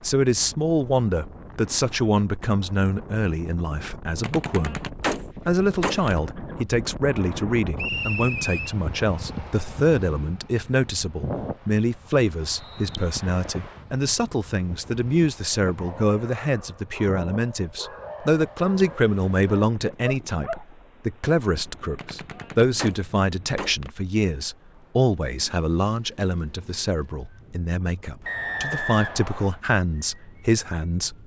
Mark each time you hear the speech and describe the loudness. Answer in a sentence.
You can hear the speech from 0.0 to 4.8 s, getting quieter; and from 5.5 to 31.1 s, at a steady volume.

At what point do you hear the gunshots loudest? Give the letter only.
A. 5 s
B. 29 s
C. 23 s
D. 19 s
A.